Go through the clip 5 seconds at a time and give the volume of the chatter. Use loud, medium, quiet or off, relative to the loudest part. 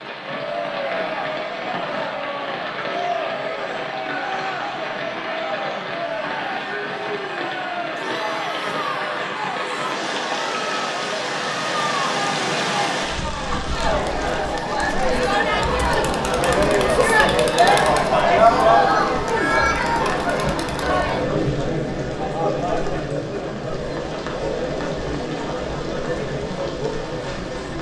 medium, medium, medium, loud, medium, medium.